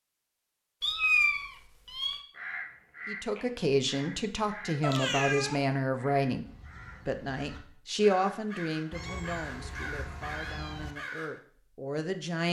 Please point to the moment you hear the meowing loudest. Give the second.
1 s.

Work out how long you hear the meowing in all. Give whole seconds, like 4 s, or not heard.
4 s.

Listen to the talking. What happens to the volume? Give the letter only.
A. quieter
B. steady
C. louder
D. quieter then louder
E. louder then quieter
D.